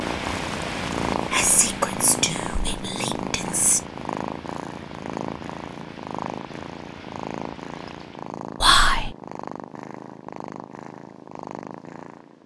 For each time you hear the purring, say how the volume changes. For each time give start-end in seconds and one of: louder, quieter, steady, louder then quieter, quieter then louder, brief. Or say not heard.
0.0-12.4 quieter.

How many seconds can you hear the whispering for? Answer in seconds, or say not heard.
3 s.